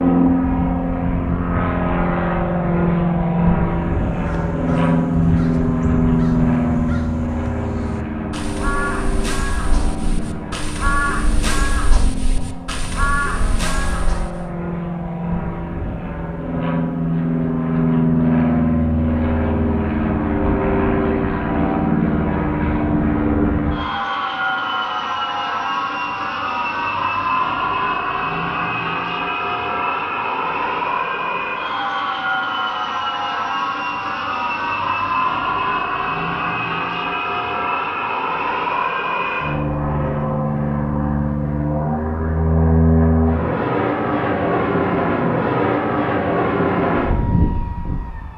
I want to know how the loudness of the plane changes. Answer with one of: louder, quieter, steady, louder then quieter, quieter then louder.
steady.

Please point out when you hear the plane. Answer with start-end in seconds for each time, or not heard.
0.0-48.3.